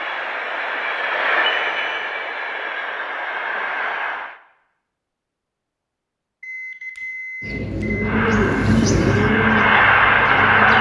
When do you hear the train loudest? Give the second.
10 s.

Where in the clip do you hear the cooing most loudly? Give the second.
9 s.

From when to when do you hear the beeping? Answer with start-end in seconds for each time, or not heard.
1.4-2.1, 6.4-8.1.